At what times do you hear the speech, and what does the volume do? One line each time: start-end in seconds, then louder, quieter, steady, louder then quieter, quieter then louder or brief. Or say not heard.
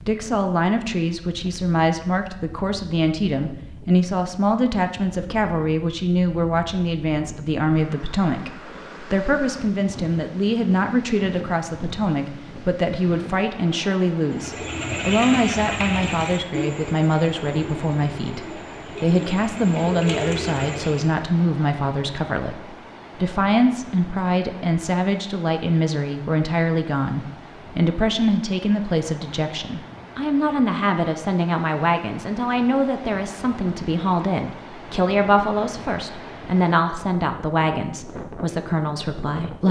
0.0-39.6 steady.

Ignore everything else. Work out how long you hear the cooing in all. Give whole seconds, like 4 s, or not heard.
7 s.